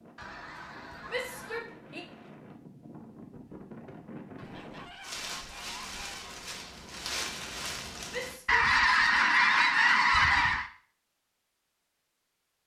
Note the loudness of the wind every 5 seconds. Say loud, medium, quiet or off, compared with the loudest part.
medium, loud, off.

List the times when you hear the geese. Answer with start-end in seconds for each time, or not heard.
0.1-1.6, 4.3-6.4, 8.4-10.7.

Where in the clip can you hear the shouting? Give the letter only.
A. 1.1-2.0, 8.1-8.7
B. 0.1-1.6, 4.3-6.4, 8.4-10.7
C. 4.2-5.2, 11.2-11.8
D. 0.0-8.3
A.